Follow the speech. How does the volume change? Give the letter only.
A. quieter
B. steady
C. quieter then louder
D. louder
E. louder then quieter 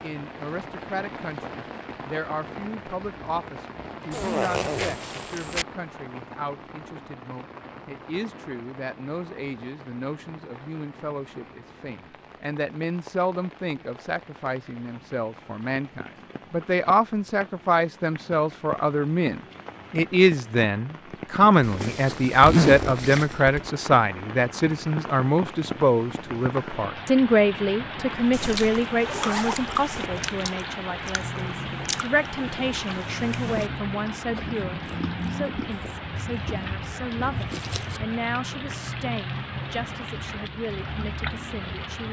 E.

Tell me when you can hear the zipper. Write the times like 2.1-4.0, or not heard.
4.1-5.7, 21.6-23.7, 28.3-30.1.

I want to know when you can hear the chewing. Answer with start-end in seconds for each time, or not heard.
28.4-38.0.